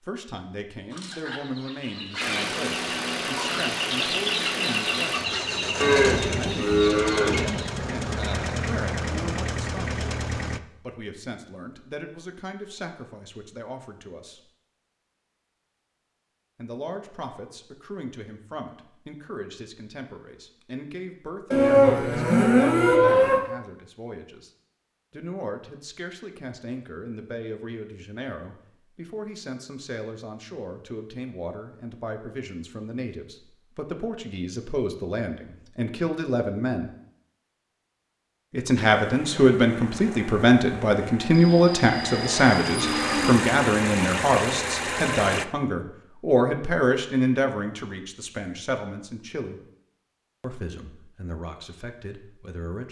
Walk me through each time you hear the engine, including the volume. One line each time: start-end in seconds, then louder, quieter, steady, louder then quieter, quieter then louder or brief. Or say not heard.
2.2-10.6 steady
39.0-45.5 louder.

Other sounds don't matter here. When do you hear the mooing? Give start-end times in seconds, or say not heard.
5.8-7.5, 21.5-23.4, 41.3-43.4.